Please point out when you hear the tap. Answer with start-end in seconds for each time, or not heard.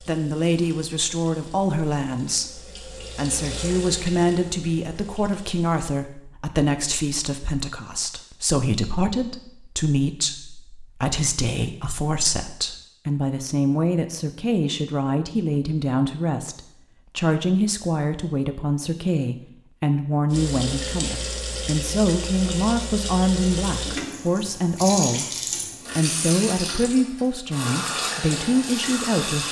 0.0-6.0, 20.3-29.4.